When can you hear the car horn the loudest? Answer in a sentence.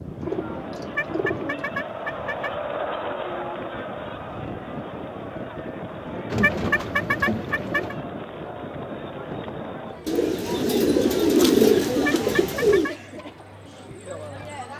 The loudest moment of the car horn is at 7 seconds.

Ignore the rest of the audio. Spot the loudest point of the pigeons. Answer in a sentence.
The loudest moment of the pigeons is at 12 seconds.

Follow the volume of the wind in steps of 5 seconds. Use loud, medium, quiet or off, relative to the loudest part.
loud, loud, off.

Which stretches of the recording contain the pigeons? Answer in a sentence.
The pigeons can be heard from 0.2 to 1.7 s, from 6.3 to 8.0 s and from 10.1 to 12.9 s.